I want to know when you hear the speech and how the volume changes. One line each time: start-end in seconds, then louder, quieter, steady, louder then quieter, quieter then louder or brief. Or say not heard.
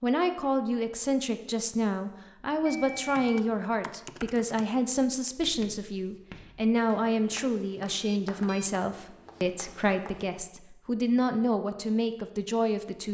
0.0-13.0 steady.